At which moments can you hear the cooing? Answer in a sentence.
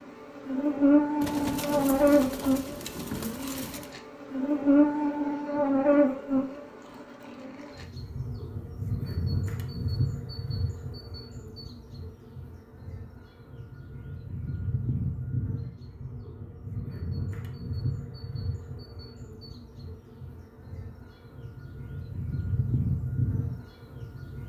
You can hear the cooing from 1.2 to 3.9 s.